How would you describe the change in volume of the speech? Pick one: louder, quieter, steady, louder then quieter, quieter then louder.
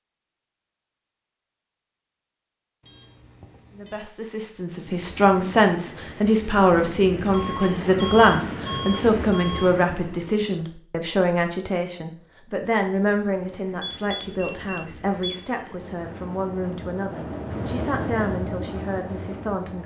quieter.